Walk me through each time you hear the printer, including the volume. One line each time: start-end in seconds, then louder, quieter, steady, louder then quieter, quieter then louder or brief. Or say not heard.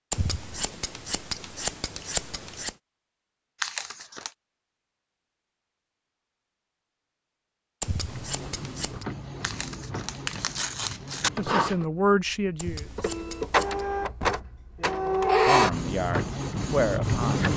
8.1-17.5 louder.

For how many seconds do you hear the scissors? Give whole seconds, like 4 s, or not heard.
5 s.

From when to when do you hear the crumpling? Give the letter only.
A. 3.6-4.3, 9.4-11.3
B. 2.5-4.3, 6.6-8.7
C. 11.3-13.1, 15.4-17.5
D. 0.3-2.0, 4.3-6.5
A.